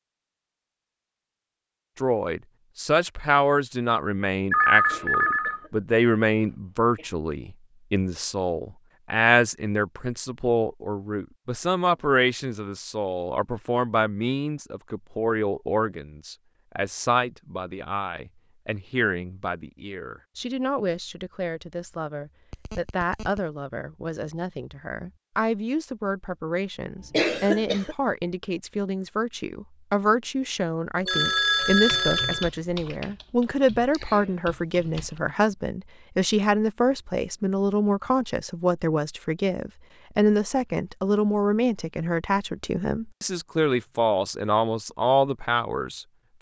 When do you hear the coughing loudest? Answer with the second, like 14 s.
27 s.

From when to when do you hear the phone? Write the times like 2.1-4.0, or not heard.
4.5-5.6, 22.5-23.4, 31.1-32.5.